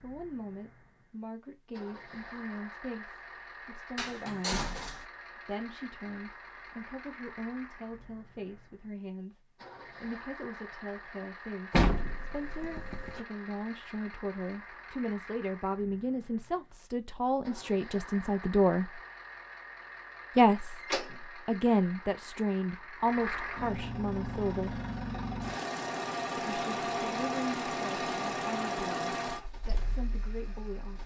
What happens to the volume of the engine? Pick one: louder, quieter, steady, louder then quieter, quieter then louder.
louder.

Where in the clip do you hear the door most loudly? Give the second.
12 s.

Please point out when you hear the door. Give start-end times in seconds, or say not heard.
4.0-5.0, 11.7-13.2, 20.8-21.4.